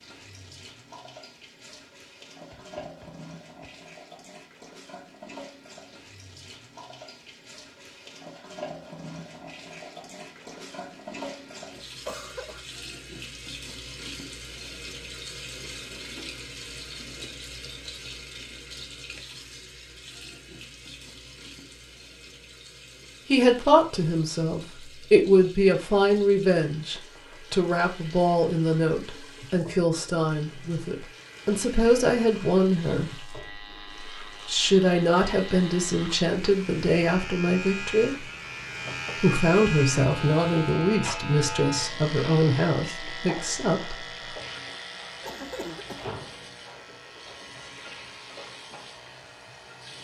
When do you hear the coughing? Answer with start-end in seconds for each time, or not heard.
12.1-12.7, 45.2-46.1.